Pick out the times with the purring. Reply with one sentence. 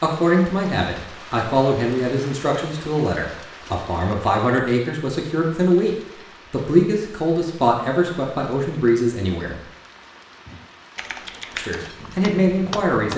The purring can't be heard in this clip.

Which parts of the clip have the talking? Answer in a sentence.
You can hear the talking from 0.0 to 9.6 s and from 11.6 to 13.1 s.